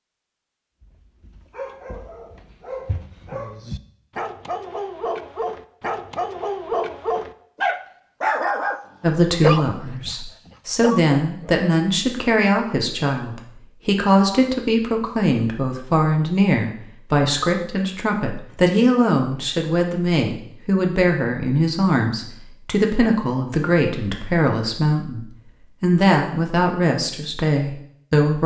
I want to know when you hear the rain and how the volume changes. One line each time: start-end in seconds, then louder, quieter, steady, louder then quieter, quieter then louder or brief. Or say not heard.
not heard.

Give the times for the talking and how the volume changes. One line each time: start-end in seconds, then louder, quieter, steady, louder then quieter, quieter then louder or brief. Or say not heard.
9.0-28.4 steady.